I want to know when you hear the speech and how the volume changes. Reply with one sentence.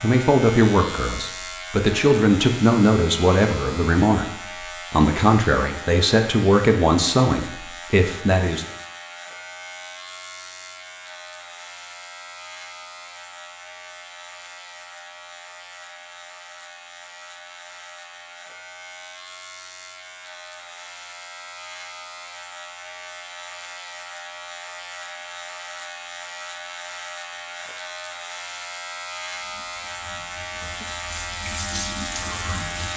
You can hear the speech from 0.0 to 8.7 s, at a steady volume.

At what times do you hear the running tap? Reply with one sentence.
The running tap can be heard from 29.2 to 32.9 s.